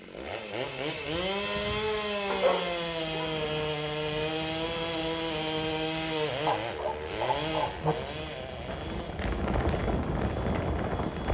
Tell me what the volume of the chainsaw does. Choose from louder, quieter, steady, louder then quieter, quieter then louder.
quieter.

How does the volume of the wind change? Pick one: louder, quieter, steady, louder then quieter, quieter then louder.
louder.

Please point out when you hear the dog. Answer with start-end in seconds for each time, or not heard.
2.3-3.4, 6.5-8.0.